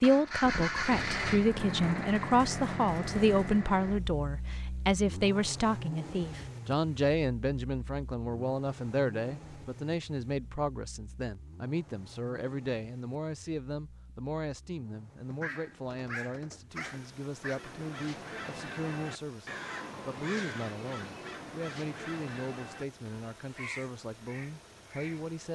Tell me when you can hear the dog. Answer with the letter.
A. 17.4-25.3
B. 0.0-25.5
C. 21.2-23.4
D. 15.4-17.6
D.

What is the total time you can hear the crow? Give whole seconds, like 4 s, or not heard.
8 s.